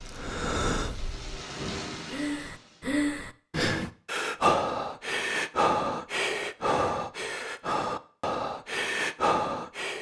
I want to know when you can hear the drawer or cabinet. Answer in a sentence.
The drawer or cabinet can't be heard in this clip.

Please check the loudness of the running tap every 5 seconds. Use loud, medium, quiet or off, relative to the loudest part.
loud, off.